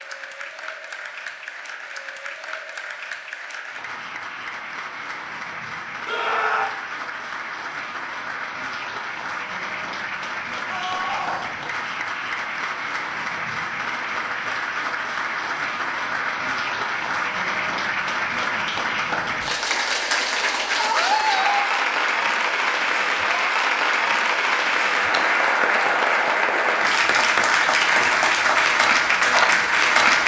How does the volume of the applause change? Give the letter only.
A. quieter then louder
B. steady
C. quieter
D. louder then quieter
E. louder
E.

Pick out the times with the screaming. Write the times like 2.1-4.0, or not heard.
6.0-6.7, 10.7-11.5, 20.8-21.7.